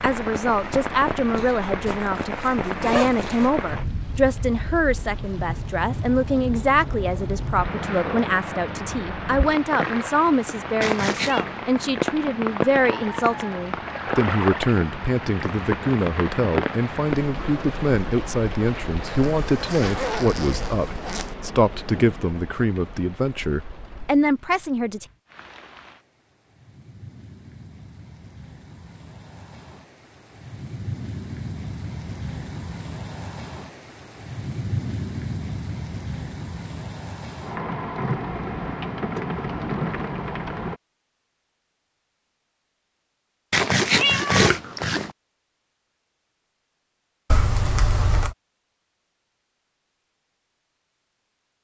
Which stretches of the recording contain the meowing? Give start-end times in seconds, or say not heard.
10.8-11.4, 43.5-45.1.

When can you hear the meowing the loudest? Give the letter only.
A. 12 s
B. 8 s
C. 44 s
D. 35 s
C.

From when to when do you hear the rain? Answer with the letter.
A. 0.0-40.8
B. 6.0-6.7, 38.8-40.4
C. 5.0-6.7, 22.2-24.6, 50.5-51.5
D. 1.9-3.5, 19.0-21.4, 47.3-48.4
A.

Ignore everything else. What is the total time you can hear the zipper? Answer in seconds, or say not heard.
5 s.